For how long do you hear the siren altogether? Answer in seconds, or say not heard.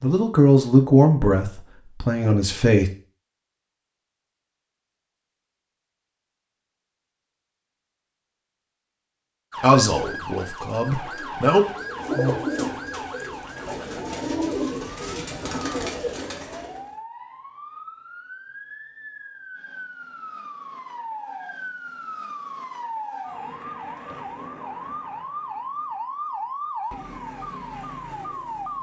19 s.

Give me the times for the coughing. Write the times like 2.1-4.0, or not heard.
not heard.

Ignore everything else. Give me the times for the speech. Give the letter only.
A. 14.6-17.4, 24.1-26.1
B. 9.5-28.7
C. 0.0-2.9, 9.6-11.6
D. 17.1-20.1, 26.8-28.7
C.